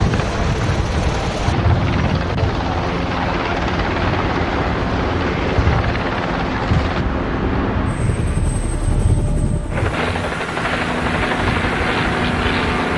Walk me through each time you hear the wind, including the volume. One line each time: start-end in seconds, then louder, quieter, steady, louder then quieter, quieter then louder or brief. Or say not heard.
0.0-12.9 steady.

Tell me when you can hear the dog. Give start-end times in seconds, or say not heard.
not heard.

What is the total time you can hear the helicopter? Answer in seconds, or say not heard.
13 s.